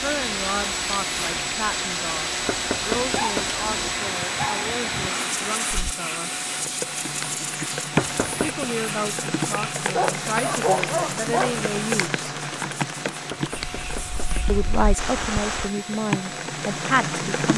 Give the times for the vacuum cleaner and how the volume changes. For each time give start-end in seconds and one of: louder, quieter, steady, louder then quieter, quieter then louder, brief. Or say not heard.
0.0-17.2 quieter.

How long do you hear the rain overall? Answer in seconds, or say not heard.
17 s.